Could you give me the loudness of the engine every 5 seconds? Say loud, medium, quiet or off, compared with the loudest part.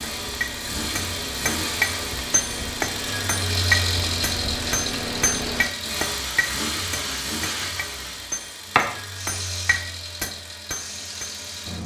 loud, loud, medium.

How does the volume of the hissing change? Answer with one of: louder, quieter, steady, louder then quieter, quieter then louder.
louder then quieter.